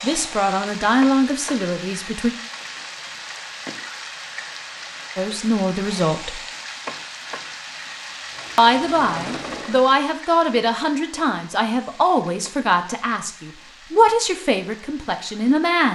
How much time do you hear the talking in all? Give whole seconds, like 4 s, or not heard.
11 s.